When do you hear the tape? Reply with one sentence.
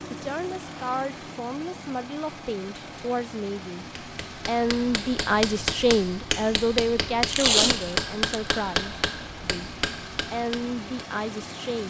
The tape can be heard from 7.2 to 8.4 s.